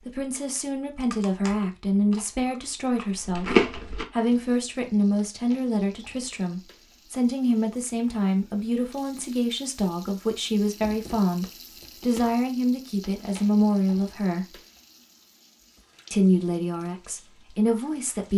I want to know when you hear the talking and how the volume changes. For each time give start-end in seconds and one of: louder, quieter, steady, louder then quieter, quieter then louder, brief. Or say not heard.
0.1-14.6 steady
16.1-18.3 brief.